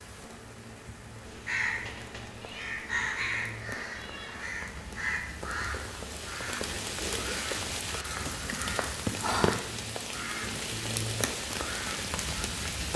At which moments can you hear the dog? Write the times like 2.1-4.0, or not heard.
not heard.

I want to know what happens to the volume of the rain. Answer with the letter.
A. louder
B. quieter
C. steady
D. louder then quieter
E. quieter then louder
A.